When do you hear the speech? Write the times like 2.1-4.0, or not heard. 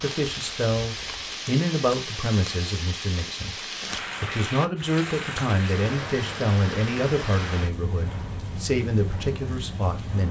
0.0-3.6, 4.2-10.2.